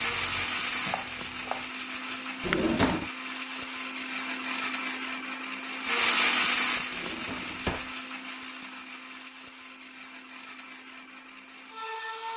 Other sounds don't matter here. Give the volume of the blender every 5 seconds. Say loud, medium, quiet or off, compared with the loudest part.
loud, loud, medium.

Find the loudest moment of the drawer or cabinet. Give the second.
3 s.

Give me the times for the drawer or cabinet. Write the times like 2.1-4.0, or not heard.
2.4-3.1, 6.9-7.9.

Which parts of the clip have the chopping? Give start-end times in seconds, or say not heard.
0.0-2.5.